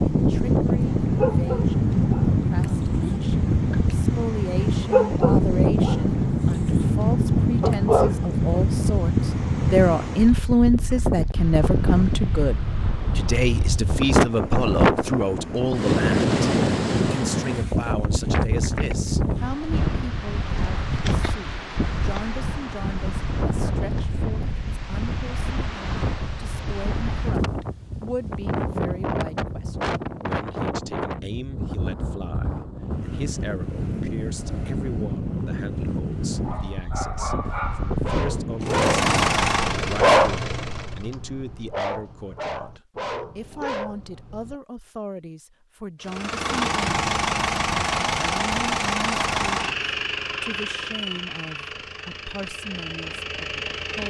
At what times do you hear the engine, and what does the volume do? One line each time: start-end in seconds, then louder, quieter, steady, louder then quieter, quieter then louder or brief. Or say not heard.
38.6-41.1 brief
46.0-54.0 quieter.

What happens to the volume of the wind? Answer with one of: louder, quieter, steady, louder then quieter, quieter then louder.
quieter.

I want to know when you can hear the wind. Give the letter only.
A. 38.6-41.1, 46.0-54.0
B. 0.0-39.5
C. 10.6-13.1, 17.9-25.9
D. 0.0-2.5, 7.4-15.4
B.